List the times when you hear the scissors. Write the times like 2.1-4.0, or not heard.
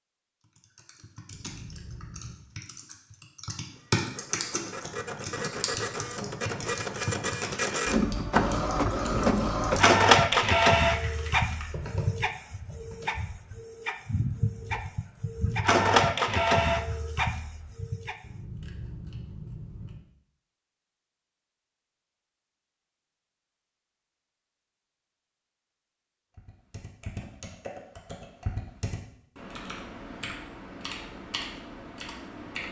1.3-2.4, 18.2-20.1.